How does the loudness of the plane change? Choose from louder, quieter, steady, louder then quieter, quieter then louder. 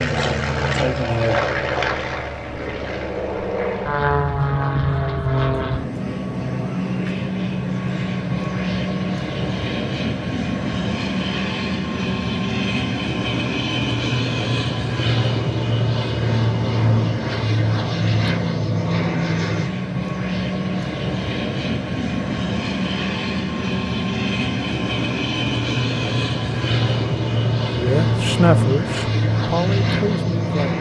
steady.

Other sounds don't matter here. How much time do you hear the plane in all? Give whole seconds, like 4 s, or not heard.
31 s.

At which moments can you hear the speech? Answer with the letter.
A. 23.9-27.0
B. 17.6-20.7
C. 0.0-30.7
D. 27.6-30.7
D.